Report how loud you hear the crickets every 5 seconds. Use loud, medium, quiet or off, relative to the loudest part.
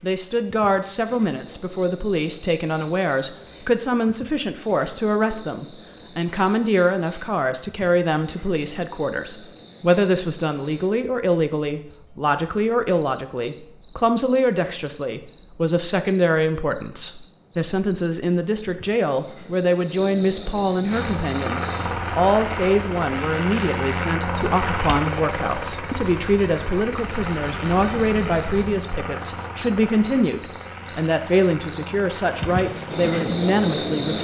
quiet, quiet, quiet, quiet, medium, medium, loud.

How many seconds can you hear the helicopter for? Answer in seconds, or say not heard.
13 s.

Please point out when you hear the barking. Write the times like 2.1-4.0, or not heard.
not heard.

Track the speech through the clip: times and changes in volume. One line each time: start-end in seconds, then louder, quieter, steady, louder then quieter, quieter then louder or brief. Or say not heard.
0.0-34.1 steady.